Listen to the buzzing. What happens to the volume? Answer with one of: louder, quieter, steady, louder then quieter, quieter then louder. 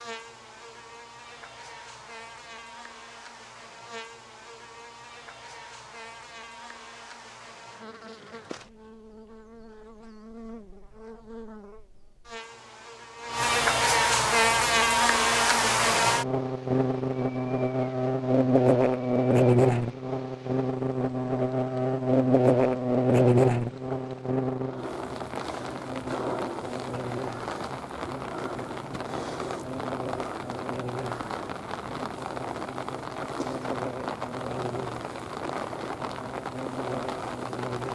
louder then quieter.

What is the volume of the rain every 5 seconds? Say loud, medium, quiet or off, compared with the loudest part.
off, off, off, quiet, quiet, loud, loud, loud.